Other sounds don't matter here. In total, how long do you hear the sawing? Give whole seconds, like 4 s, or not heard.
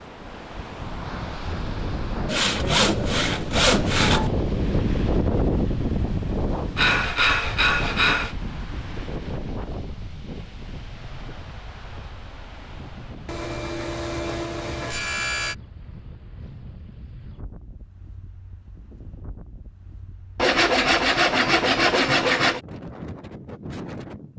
8 s.